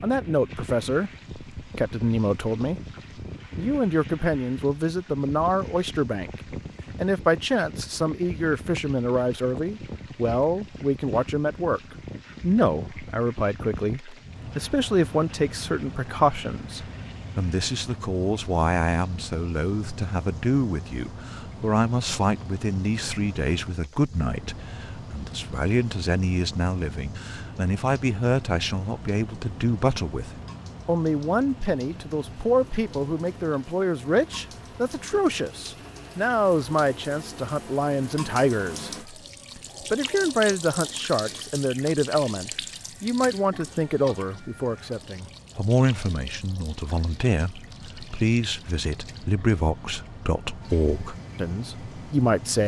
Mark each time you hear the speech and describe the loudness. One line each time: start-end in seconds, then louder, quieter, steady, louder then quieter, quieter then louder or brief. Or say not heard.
0.0-2.8 brief
3.5-52.6 steady.